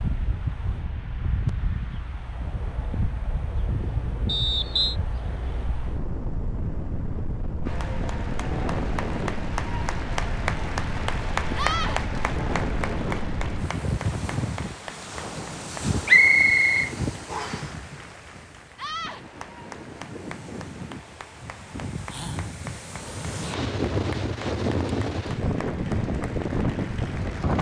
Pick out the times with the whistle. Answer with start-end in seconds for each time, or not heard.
4.2-5.0, 16.1-17.6.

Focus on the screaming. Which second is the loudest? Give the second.
12 s.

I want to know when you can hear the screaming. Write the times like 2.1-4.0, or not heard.
11.6-12.0, 18.8-19.2.